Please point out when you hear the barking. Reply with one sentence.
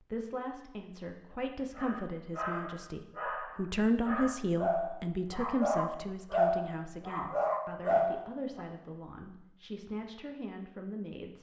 The barking can be heard from 1.7 to 8.7 s.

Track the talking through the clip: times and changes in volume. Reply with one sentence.
The talking can be heard from 0.0 to 11.3 s, getting louder then quieter.